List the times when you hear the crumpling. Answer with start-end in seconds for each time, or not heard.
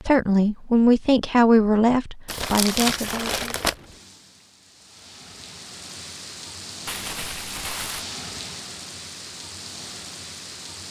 2.2-3.8, 6.8-8.1.